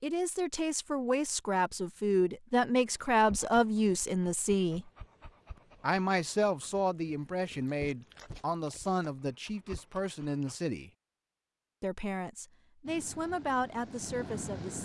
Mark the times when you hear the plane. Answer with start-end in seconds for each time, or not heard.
12.8-14.8.